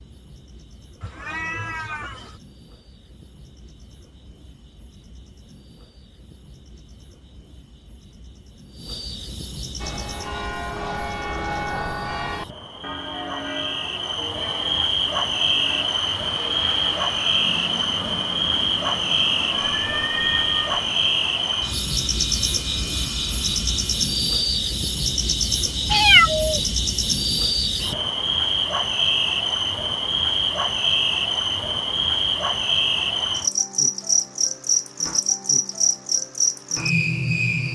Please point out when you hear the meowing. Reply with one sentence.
You can hear the meowing from 1.0 to 2.4 s, from 19.5 to 20.6 s and from 25.9 to 26.6 s.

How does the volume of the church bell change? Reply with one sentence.
The volume of the church bell goes down.